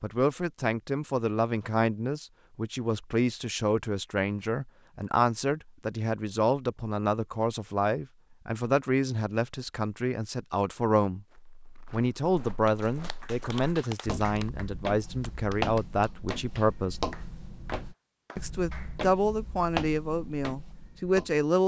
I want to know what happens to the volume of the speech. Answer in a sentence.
The volume of the speech stays about the same.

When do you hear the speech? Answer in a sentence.
The speech can be heard from 0.0 to 11.2 s, from 11.9 to 17.0 s and from 18.4 to 21.6 s.